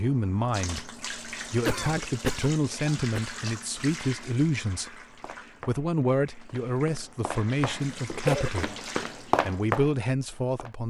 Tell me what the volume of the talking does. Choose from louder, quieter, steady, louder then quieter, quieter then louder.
steady.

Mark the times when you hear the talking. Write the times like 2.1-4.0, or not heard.
0.0-5.0, 5.7-10.8.